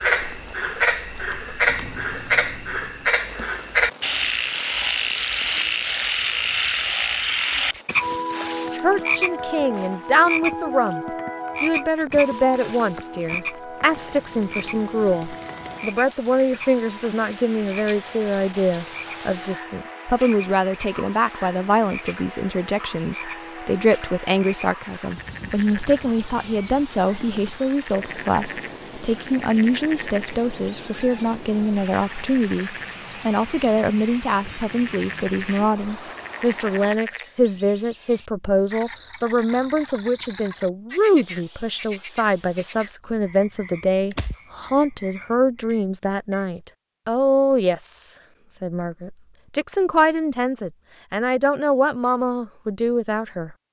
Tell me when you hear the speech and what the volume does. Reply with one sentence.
The speech can be heard briefly from 8.7 to 11.0 s; and from 11.6 to 53.5 s, at a steady volume.